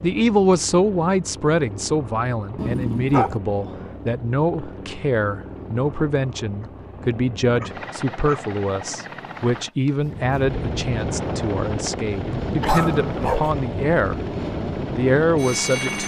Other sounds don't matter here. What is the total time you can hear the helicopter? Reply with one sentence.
You can hear the helicopter for 16 seconds altogether.